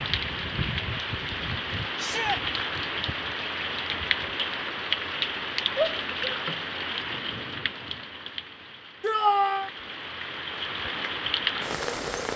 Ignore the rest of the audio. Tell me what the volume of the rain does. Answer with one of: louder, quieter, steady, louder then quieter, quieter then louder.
quieter then louder.